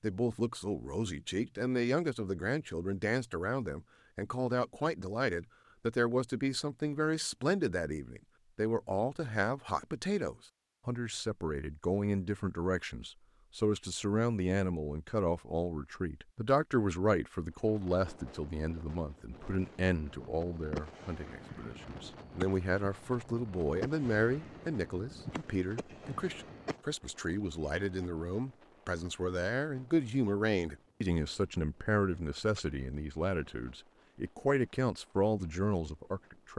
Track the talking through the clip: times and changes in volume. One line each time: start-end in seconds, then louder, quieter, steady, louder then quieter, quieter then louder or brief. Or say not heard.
0.0-36.5 steady.